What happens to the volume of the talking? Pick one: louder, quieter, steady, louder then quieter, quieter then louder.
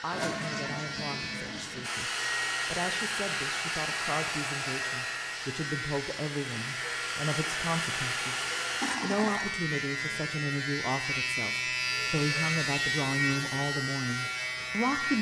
louder.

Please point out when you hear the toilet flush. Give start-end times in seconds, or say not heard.
0.1-1.9, 8.8-9.6.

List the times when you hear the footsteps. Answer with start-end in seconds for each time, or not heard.
not heard.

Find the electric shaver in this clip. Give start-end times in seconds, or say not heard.
0.0-15.1.